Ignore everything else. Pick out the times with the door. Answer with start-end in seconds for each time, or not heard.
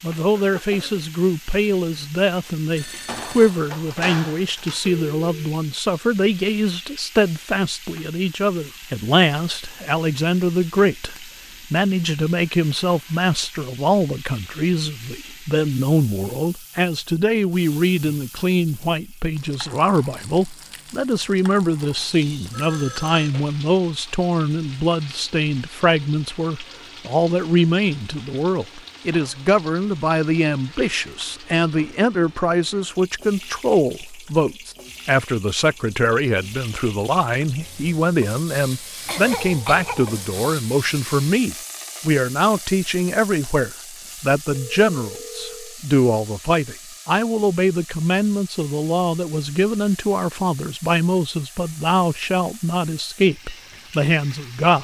not heard.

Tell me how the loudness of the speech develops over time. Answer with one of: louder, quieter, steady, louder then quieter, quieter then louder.
steady.